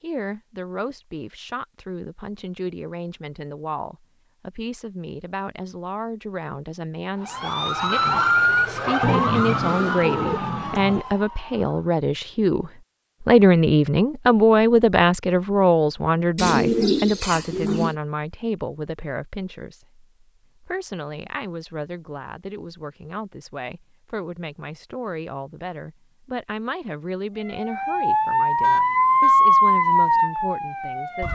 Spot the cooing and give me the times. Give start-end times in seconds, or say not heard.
9.0-11.1, 16.4-17.9.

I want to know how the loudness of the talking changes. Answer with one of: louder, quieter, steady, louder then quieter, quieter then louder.
louder then quieter.